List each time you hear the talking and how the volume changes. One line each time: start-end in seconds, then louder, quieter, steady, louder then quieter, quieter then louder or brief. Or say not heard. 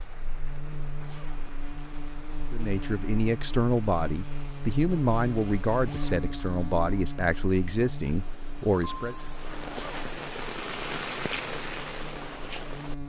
2.5-9.2 steady.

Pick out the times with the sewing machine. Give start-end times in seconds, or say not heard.
not heard.